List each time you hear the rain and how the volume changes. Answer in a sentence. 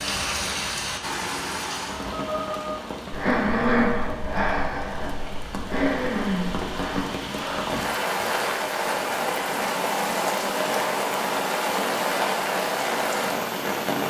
The rain can be heard from 0.0 to 14.0 s, getting quieter then louder.